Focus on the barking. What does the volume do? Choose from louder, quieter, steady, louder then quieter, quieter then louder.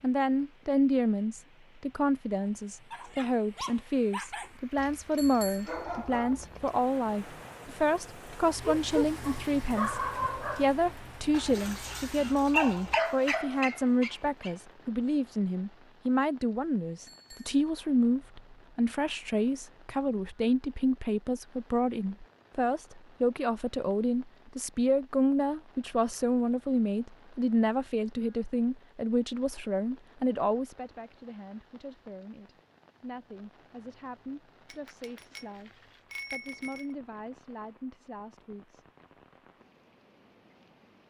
louder.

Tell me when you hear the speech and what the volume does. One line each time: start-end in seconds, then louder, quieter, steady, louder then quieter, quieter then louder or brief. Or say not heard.
0.0-38.8 quieter.